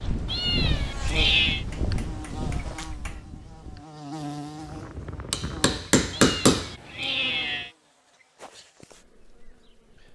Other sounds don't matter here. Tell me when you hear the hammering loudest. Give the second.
6 s.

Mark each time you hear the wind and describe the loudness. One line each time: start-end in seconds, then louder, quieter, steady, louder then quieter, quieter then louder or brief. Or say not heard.
0.0-5.9 quieter then louder.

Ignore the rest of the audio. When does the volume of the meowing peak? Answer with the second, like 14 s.
1 s.